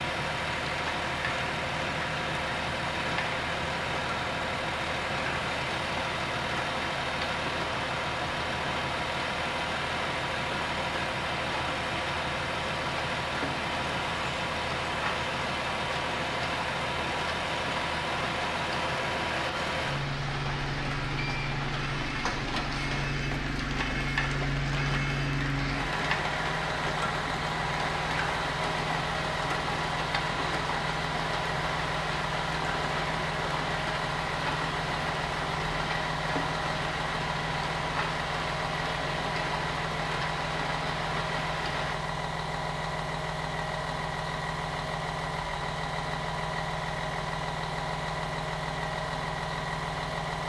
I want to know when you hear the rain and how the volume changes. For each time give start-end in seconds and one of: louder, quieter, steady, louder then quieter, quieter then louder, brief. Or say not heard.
0.0-42.0 steady.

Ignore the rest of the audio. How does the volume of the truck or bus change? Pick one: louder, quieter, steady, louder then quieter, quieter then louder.
steady.